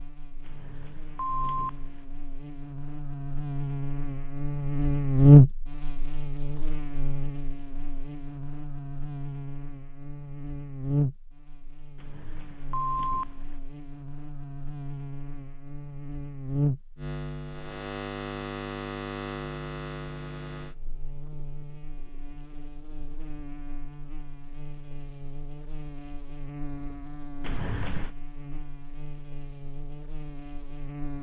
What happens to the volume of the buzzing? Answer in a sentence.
The loudness of the buzzing goes down.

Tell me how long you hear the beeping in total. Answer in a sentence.
You can hear the beeping for 4 seconds altogether.